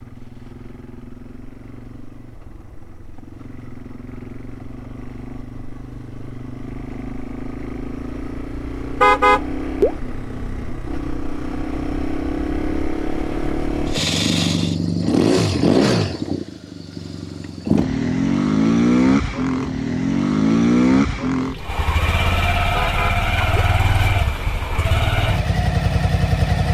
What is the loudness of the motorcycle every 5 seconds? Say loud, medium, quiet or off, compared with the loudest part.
quiet, quiet, medium, loud, loud, loud.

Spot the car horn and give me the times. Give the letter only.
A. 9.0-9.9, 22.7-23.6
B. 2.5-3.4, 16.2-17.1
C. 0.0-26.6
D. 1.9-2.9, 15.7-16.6
A.